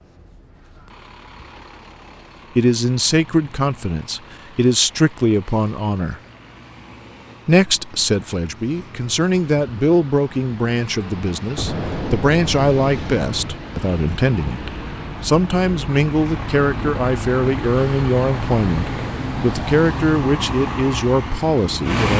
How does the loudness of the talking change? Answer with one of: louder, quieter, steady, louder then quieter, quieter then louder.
steady.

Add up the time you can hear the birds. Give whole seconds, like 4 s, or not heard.
not heard.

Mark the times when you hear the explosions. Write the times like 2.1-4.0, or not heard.
11.6-13.6.